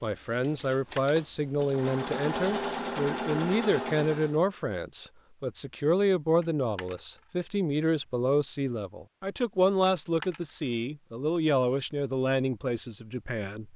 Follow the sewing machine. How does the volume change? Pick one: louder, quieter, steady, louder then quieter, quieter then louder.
louder.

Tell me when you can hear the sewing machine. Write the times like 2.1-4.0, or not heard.
0.0-4.4.